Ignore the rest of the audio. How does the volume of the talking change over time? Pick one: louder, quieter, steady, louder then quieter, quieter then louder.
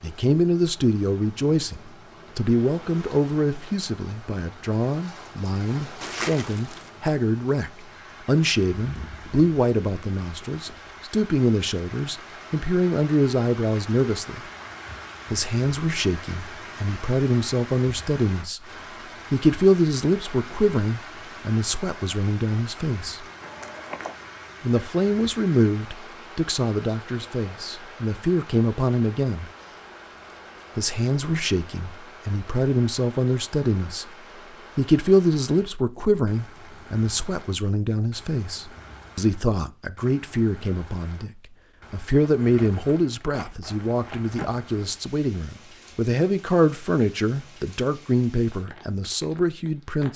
steady.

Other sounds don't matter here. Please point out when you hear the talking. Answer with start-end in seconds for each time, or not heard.
0.0-14.4, 15.3-18.6, 19.3-23.2, 24.6-29.5, 30.8-34.0, 34.8-50.1.